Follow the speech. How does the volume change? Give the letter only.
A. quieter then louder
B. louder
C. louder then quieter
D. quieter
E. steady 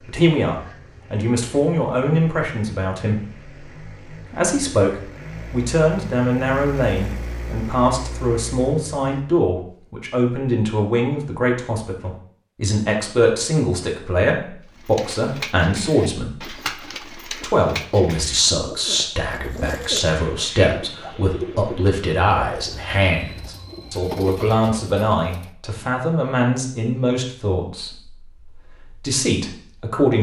E.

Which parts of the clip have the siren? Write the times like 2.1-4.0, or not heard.
not heard.